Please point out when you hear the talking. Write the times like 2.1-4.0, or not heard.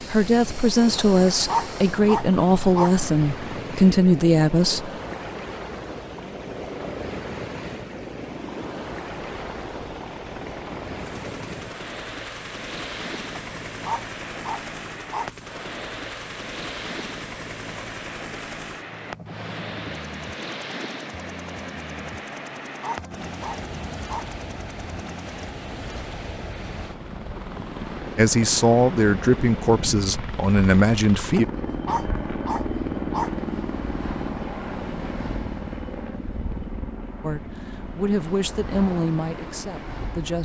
0.0-4.9, 28.1-31.4, 37.2-40.4.